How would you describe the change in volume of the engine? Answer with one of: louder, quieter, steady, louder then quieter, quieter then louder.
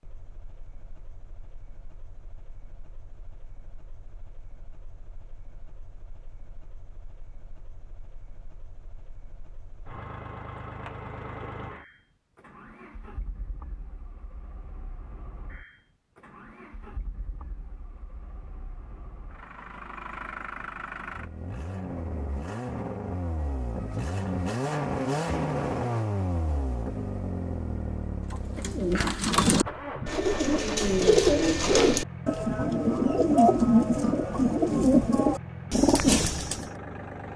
louder then quieter.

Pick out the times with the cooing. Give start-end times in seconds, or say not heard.
28.3-36.6.